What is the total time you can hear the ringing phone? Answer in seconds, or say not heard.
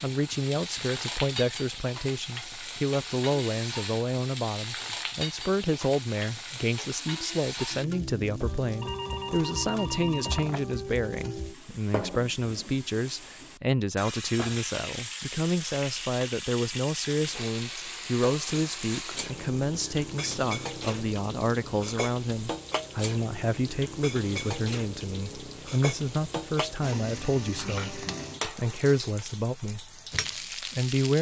2 s.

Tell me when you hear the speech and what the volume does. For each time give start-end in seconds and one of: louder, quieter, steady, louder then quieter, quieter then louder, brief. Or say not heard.
0.0-30.0 steady
30.6-31.1 brief.